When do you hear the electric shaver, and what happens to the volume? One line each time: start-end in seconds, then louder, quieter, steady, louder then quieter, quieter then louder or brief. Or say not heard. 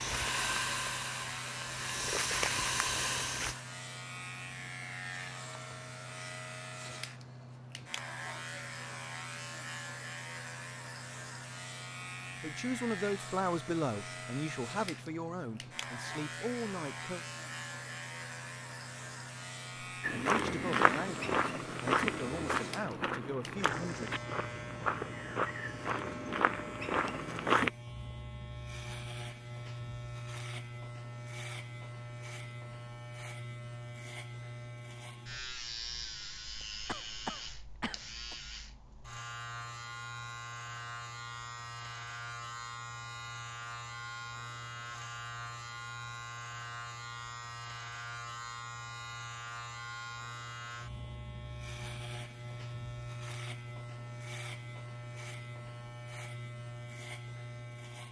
0.0-58.0 steady.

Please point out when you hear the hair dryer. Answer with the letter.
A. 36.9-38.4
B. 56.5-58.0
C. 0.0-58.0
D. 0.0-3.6
D.